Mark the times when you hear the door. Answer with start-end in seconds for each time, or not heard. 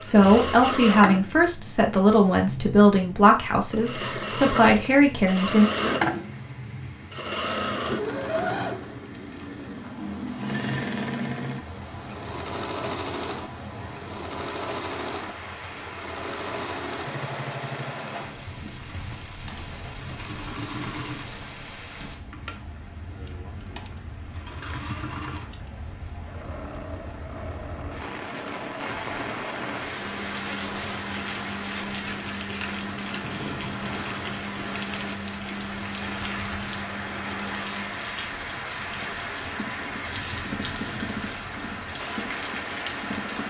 not heard.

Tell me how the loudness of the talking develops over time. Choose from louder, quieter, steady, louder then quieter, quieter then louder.
quieter then louder.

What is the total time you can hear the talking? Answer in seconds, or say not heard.
6 s.